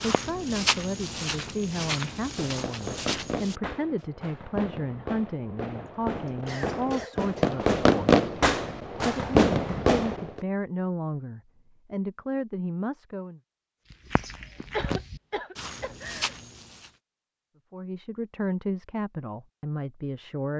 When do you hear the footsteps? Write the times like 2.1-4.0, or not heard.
0.0-3.6, 13.9-16.9.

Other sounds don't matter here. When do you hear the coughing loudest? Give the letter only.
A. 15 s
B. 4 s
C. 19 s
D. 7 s
A.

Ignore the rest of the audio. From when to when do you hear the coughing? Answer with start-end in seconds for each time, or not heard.
5.8-7.5, 14.7-16.3.